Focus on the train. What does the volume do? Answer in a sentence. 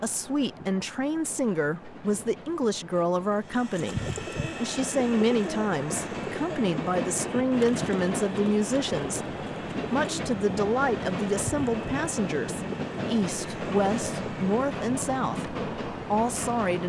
The volume of the train goes up.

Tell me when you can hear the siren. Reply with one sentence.
You can't hear the siren here.